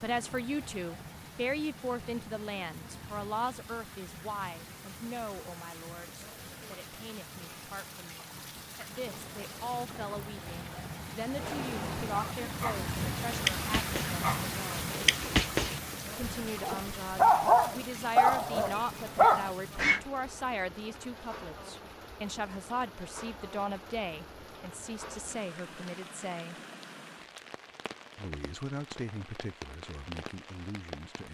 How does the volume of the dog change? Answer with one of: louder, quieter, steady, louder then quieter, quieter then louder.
louder.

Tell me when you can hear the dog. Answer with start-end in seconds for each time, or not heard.
11.3-20.0.